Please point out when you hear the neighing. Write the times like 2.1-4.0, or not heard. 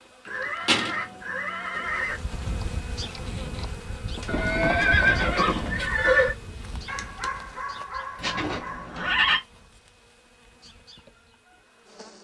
0.2-2.1, 4.2-6.3, 8.2-9.4.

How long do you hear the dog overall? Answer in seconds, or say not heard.
2 s.